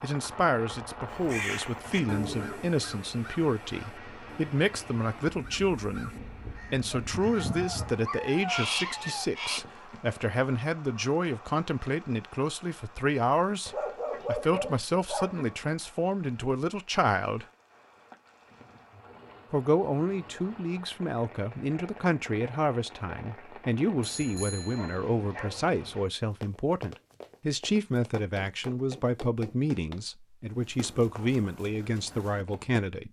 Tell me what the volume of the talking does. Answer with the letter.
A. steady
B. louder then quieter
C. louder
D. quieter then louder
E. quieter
A.